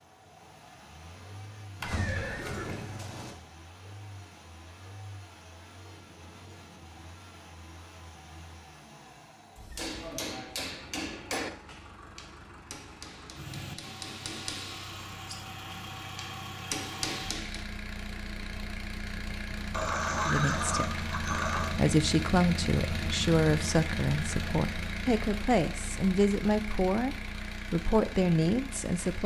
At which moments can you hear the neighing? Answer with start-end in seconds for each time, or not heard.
1.8-3.4, 19.7-21.7.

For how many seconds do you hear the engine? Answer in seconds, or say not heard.
29 s.